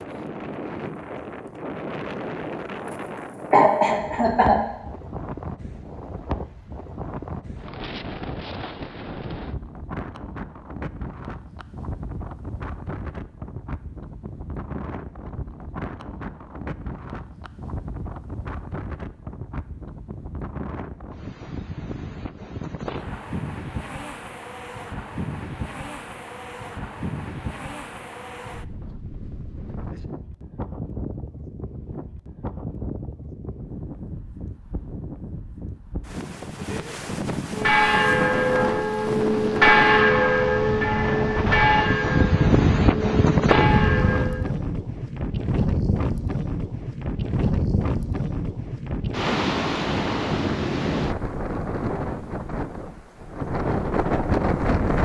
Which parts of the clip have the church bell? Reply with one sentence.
The church bell can be heard from 37.5 to 44.4 s.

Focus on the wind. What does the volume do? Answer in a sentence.
The volume of the wind goes up.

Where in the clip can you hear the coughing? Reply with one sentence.
You can hear the coughing from 3.5 to 4.6 s.